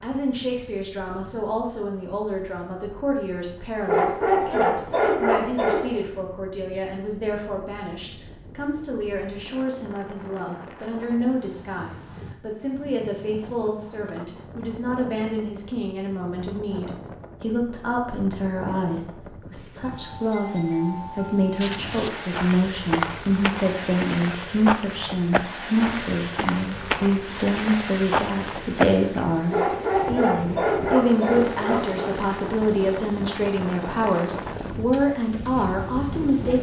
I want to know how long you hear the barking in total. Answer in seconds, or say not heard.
5 s.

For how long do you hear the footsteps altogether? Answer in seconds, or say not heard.
8 s.